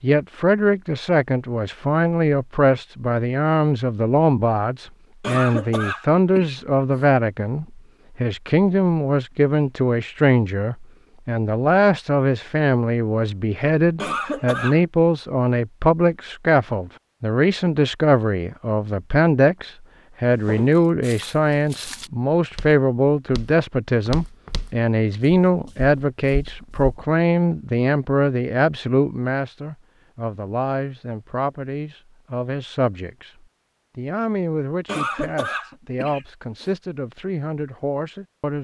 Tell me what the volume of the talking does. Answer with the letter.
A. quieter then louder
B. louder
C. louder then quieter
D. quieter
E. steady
D.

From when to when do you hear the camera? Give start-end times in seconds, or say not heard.
not heard.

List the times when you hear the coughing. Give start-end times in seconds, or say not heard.
5.2-7.0, 13.9-14.8, 34.9-36.7.